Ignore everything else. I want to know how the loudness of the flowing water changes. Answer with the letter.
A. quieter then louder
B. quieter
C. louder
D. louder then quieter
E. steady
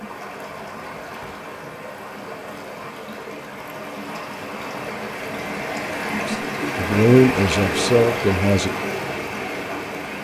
C.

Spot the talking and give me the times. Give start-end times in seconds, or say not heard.
6.2-8.7.